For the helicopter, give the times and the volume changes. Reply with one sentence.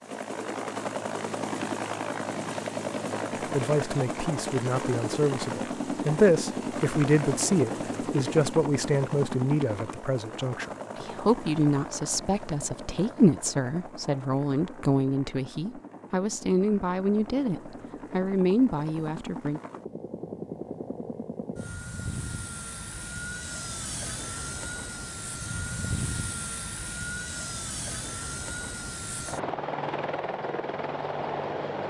The helicopter can be heard from 0.0 to 31.8 s, getting quieter then louder.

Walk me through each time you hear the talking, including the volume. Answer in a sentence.
You can hear the talking from 3.5 to 19.6 s, at a steady volume.